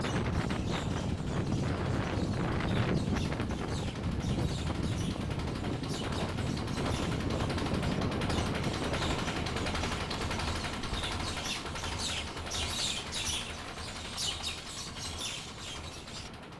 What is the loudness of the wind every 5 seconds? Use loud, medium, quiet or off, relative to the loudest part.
loud, loud, quiet, quiet.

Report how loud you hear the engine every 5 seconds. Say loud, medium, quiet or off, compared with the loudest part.
medium, loud, loud, medium.